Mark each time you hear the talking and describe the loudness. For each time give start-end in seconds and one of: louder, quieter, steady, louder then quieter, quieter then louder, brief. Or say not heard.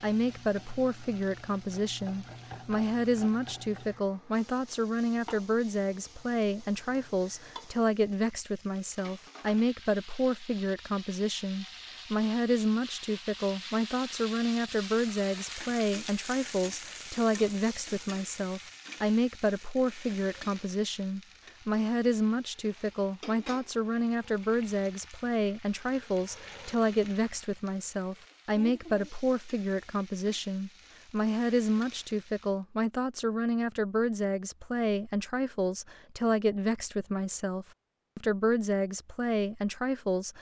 0.0-40.3 steady.